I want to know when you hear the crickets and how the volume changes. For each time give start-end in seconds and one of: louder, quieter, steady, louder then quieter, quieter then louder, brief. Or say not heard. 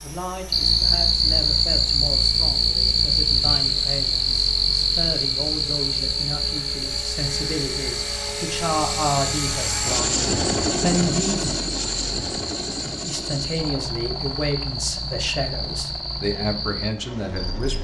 0.1-17.7 quieter.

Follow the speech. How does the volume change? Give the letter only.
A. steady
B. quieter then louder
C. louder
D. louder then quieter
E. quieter
C.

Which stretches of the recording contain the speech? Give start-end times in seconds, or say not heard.
0.0-11.5, 13.0-17.7.